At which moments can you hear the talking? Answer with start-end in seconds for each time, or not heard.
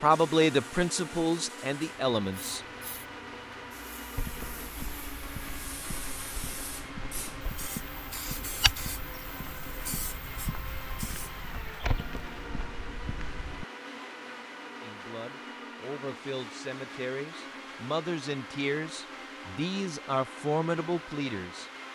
0.0-2.6, 14.8-21.7.